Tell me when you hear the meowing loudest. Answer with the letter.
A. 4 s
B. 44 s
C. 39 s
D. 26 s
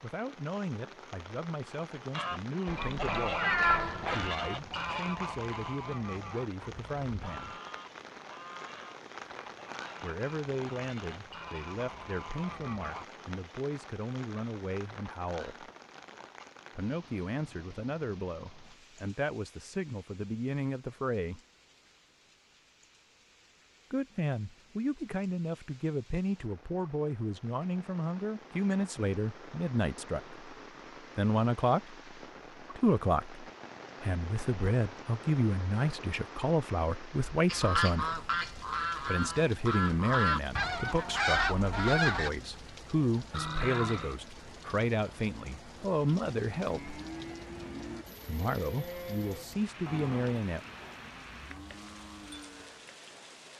A.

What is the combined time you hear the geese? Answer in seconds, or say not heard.
16 s.